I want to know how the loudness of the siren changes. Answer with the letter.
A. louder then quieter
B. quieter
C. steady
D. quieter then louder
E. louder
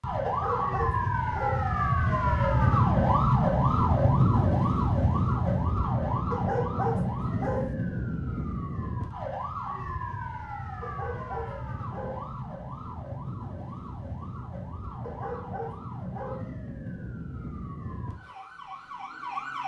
B.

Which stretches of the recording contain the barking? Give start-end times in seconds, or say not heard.
0.2-1.7, 6.3-7.8, 10.8-12.2, 15.0-16.4.